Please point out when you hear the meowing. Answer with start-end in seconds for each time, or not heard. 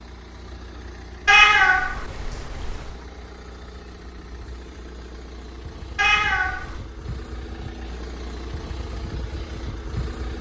1.2-2.9, 6.0-6.8.